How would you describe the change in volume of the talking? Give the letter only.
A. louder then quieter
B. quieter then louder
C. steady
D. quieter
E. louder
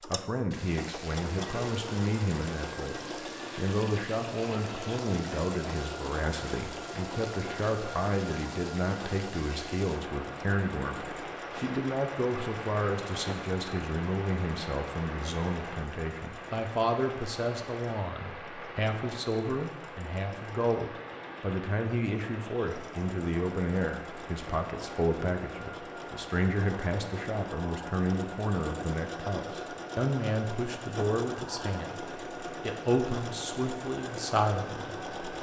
C.